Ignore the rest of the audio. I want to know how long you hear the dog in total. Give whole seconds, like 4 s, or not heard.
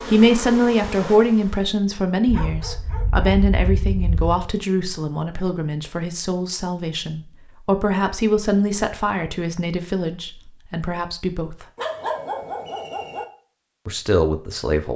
4 s.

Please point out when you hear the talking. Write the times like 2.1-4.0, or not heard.
0.0-11.7, 13.8-14.9.